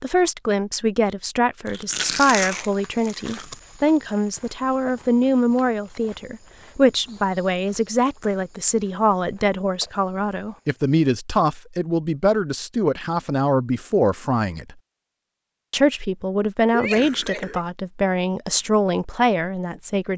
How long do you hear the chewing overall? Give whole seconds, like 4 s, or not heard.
2 s.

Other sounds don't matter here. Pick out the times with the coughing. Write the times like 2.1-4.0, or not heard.
16.7-17.6.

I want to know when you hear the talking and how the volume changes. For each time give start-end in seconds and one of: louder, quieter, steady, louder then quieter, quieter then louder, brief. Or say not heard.
0.0-14.8 steady
15.7-20.1 steady.